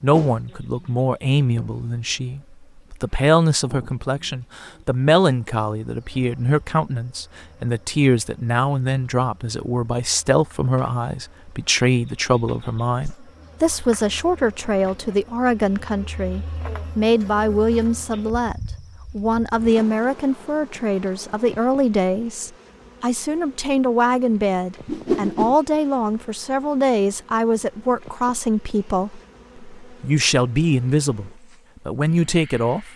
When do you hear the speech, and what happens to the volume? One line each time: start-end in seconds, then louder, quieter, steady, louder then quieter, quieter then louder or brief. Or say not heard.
0.0-32.9 steady.